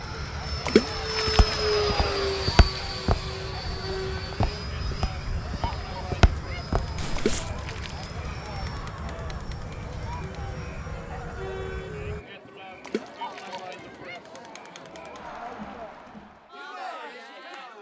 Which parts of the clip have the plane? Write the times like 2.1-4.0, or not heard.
0.0-12.2.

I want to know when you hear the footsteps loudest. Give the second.
6 s.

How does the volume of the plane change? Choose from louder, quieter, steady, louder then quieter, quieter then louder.
quieter.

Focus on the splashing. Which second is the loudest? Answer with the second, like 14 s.
1 s.